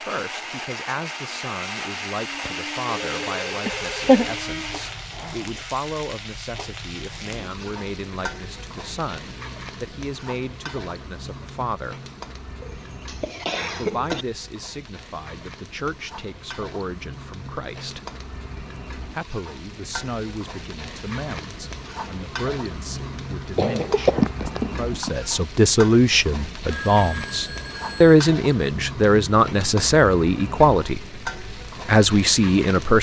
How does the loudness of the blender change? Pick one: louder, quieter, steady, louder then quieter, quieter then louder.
steady.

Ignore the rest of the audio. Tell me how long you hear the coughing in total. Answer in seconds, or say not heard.
4 s.